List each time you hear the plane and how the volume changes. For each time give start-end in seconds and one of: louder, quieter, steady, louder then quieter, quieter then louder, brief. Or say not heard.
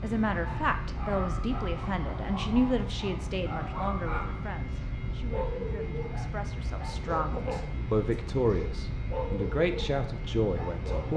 0.0-11.1 steady.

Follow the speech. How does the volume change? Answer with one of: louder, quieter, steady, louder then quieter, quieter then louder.
quieter then louder.